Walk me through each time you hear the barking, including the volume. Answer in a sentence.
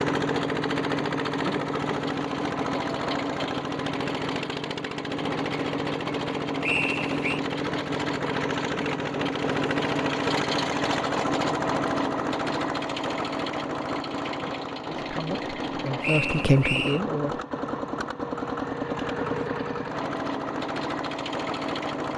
The barking can't be heard in this clip.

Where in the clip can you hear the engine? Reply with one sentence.
You can hear the engine from 0.0 to 22.1 s.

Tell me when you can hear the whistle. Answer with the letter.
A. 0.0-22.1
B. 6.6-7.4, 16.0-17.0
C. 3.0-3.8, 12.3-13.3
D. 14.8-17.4
B.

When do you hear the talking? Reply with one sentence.
The talking can be heard from 14.8 to 17.4 s.